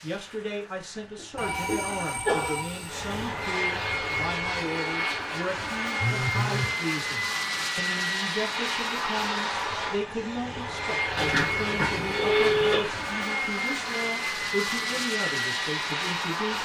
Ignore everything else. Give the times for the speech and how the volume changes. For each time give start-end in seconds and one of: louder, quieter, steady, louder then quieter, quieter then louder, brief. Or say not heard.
0.0-16.6 steady.